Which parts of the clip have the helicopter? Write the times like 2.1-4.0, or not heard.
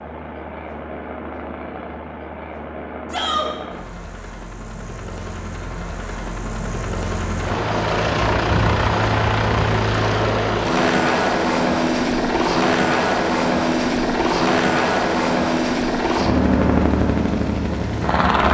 0.0-18.4.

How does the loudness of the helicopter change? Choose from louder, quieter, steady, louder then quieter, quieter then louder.
louder.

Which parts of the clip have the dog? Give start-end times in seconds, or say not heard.
not heard.